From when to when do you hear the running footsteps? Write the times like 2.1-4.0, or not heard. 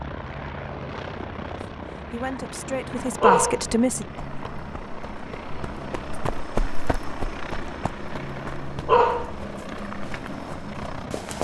4.1-11.3.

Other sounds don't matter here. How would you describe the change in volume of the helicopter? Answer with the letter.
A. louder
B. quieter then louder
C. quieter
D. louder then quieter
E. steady
E.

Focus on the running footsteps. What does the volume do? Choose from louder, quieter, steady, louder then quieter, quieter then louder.
louder then quieter.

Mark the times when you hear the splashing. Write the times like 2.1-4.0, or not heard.
not heard.